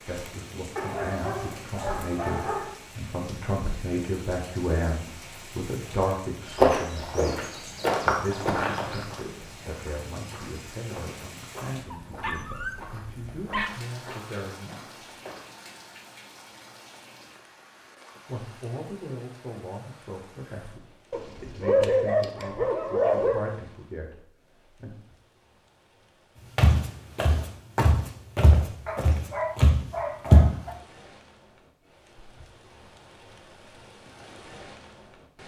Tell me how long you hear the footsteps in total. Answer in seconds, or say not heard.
13 s.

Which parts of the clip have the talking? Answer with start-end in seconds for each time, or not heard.
0.1-14.9, 18.2-24.9.